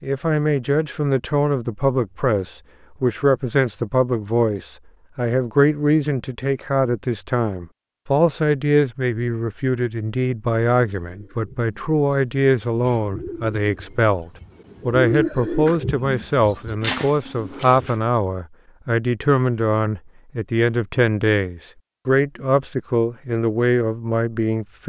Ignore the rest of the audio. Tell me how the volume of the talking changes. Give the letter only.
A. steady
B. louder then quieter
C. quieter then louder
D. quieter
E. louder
A.